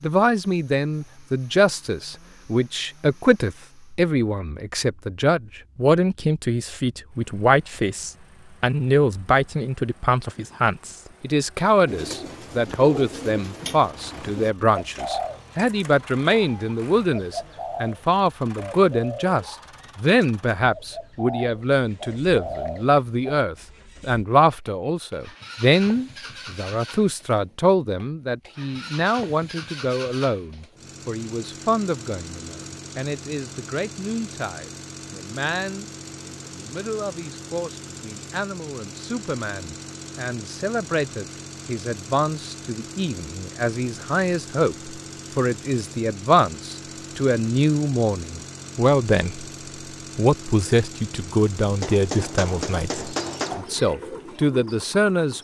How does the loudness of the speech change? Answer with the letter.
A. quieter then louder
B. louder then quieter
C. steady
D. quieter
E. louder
A.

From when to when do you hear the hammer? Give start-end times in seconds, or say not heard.
51.8-53.6.